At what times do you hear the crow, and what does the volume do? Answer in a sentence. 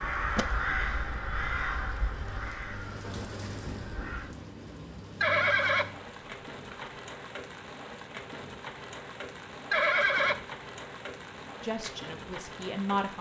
The crow can be heard from 0.0 to 4.3 s, getting quieter.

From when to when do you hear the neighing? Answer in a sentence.
You can hear the neighing from 0.0 to 2.4 s, from 5.2 to 6.9 s and from 9.7 to 10.3 s.